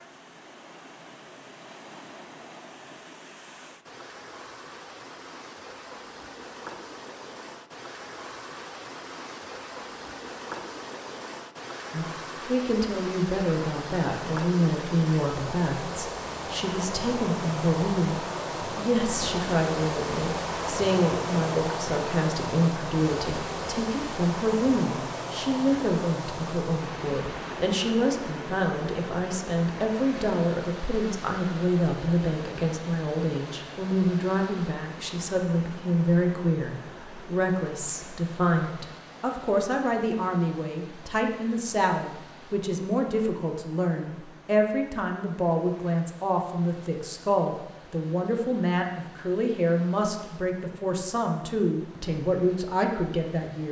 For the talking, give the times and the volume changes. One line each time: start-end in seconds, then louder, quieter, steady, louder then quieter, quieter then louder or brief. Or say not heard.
11.9-53.6 steady.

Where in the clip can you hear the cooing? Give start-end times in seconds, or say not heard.
not heard.